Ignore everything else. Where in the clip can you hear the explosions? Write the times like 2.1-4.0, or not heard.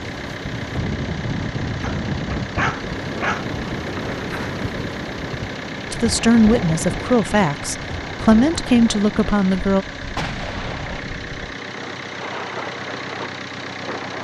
10.2-11.1.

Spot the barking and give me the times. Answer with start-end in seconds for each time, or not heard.
1.8-3.5.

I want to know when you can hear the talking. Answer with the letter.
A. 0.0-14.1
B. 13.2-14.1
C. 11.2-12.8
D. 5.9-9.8
D.